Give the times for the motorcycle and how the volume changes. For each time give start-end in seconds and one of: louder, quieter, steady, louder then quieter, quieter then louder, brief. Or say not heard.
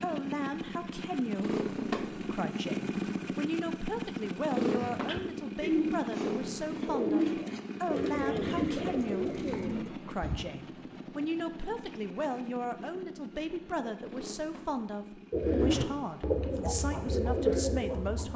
0.0-18.3 quieter.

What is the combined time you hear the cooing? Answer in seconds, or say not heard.
9 s.